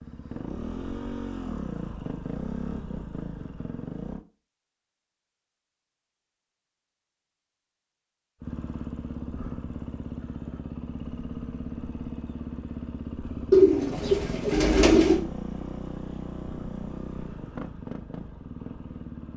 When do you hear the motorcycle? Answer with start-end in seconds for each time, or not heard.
0.0-4.2, 8.4-19.3.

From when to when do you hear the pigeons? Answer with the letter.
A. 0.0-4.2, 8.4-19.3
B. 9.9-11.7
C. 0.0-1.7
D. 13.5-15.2
D.